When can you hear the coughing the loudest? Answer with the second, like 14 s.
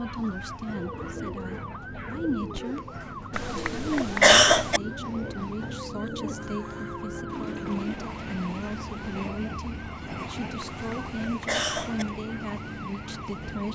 4 s.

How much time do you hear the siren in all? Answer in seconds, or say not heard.
14 s.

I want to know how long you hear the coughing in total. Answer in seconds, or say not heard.
3 s.